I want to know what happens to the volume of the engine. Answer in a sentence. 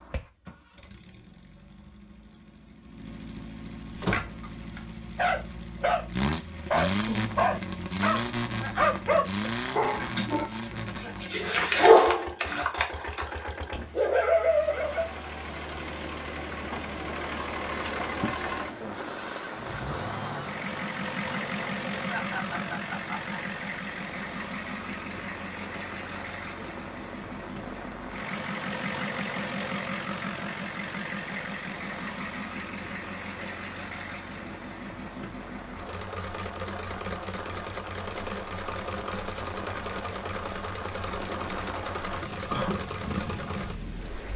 The volume of the engine stays about the same.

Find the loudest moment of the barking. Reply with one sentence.
The volume of the barking peaks at 12 seconds.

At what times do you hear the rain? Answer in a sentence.
The rain can be heard from 17.6 to 44.3 s.